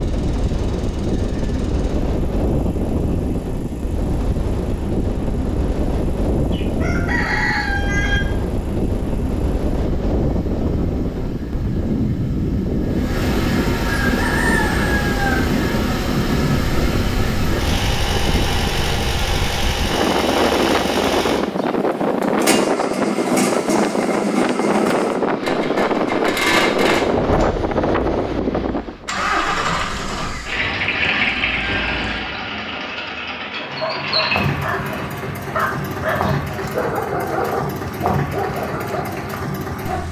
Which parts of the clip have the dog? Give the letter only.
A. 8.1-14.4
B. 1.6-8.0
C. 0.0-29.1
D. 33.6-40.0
D.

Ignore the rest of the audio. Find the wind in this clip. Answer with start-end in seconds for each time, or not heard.
0.0-29.1.